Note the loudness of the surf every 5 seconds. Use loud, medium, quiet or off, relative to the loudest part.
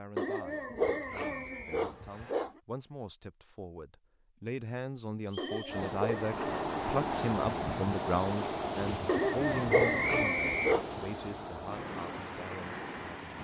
off, loud, medium.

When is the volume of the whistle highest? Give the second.
10 s.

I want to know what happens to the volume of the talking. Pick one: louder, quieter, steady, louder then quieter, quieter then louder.
louder then quieter.